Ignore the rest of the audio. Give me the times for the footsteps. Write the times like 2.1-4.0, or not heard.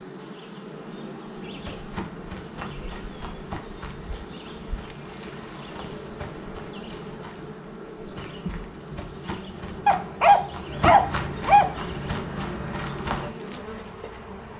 1.4-13.3.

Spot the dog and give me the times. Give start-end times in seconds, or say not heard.
9.8-11.7.